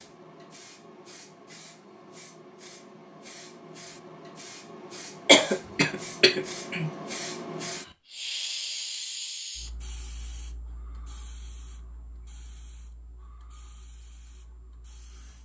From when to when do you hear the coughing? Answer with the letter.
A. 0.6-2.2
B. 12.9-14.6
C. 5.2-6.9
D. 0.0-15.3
C.